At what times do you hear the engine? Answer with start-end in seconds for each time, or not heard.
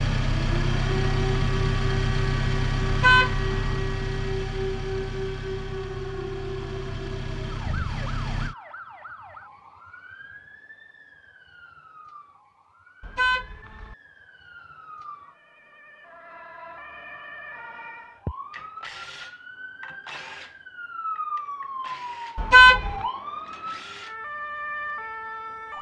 0.0-8.6.